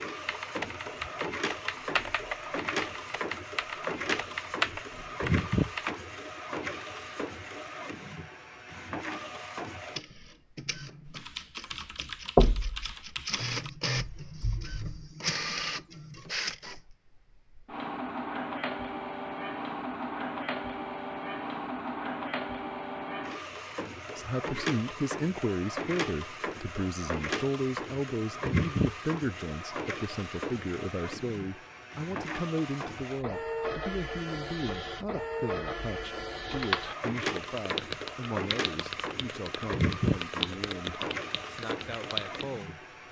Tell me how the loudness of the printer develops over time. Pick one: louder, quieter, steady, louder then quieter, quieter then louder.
steady.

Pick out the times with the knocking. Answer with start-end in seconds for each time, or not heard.
12.3-12.9.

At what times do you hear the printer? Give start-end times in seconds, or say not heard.
0.0-43.0.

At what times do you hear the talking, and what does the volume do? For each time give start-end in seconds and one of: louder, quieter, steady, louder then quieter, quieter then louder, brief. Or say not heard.
24.1-42.9 quieter.